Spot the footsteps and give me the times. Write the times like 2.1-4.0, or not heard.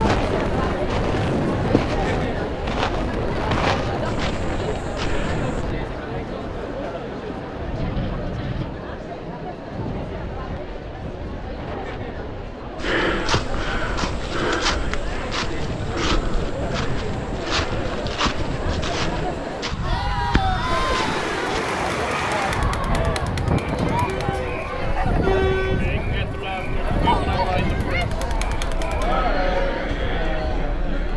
0.0-5.7, 12.8-21.6.